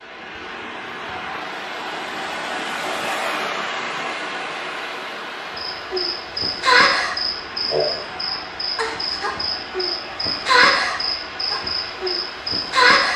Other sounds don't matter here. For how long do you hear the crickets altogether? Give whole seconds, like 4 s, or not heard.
8 s.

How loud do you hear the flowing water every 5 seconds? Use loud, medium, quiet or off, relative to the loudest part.
loud, medium, medium.